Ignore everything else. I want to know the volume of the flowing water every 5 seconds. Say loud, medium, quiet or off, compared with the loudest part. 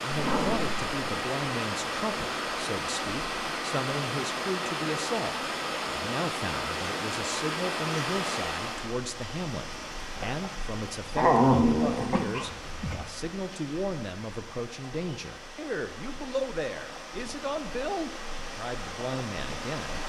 loud, loud, medium, medium.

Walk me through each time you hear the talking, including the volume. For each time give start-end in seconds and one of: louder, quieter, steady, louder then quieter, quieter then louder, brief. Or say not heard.
0.0-20.0 steady.